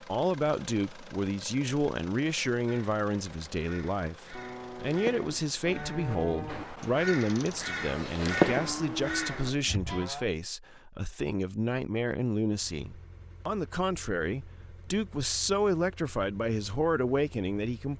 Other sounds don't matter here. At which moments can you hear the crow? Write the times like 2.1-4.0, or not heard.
2.6-10.0.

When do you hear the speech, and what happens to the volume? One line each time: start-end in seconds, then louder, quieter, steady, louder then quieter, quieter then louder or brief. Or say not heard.
0.0-17.9 steady.